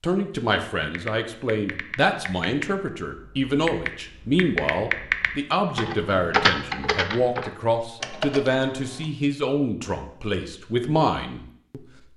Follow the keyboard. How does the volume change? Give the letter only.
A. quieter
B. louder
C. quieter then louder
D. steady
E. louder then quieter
E.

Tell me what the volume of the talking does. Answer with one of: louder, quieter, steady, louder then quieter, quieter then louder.
steady.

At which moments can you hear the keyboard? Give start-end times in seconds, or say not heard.
0.8-9.1.